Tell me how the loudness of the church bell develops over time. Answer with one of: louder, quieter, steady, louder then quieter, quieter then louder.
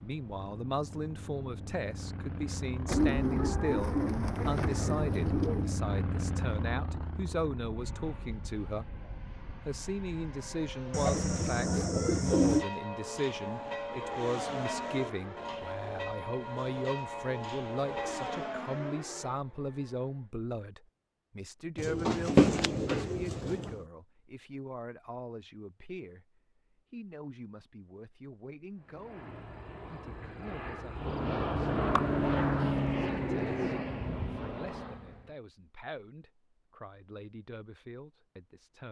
steady.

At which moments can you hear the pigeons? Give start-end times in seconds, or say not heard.
2.9-5.8, 10.9-12.7, 21.8-23.8, 31.9-33.8.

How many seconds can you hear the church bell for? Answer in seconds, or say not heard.
6 s.